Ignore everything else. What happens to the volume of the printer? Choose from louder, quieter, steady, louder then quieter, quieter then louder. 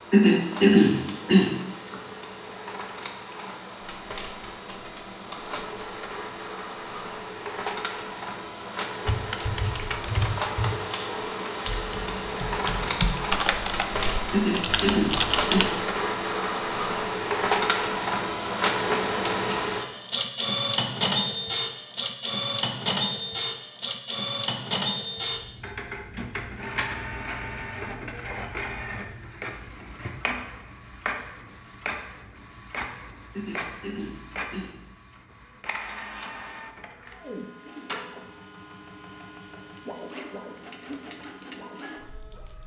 louder then quieter.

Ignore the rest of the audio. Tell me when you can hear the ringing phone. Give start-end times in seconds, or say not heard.
not heard.